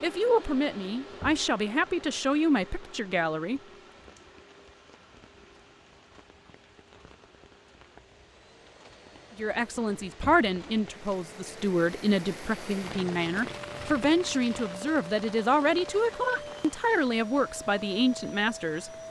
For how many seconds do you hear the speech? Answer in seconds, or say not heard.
13 s.